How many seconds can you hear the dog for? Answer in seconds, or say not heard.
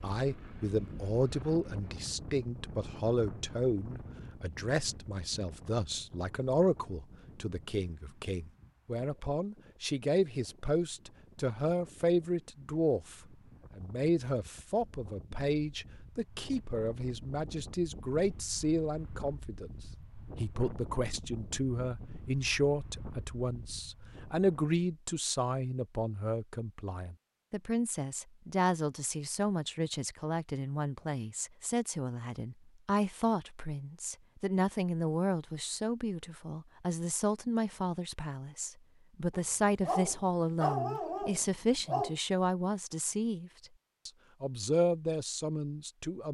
3 s.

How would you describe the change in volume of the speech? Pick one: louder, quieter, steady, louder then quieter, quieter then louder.
steady.